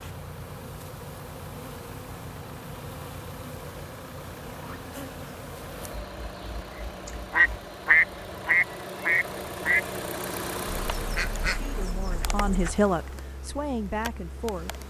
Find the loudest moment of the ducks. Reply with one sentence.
The loudest moment of the ducks is at 8 seconds.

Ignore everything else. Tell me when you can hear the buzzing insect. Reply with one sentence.
The buzzing insect can be heard from 0.0 to 7.7 s and from 10.2 to 14.8 s.